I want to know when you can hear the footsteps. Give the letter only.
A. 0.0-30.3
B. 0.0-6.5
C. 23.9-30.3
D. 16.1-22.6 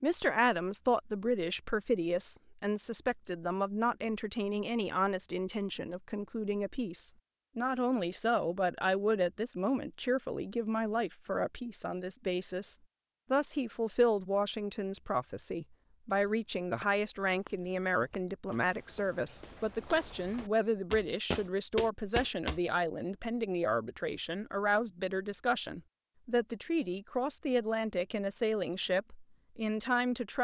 D.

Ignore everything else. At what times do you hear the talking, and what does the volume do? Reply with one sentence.
You can hear the talking from 0.0 to 30.3 s, at a steady volume.